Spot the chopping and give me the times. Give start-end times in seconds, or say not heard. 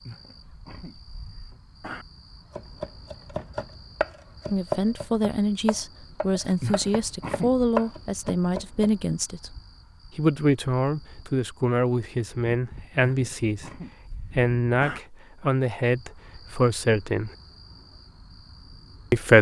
2.5-8.9.